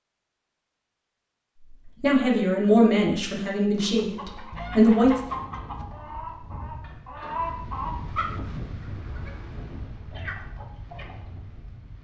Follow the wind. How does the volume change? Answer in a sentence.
The loudness of the wind goes up, then down.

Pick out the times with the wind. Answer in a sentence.
The wind can be heard from 5.2 to 11.9 s.